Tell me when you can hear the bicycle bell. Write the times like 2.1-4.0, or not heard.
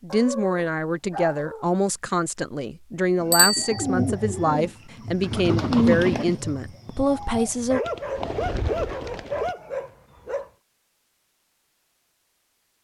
3.3-3.8.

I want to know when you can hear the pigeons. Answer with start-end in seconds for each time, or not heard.
3.2-9.6.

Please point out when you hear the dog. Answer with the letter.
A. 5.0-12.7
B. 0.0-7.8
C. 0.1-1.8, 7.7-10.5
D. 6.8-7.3
C.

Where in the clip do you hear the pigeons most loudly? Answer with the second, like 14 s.
6 s.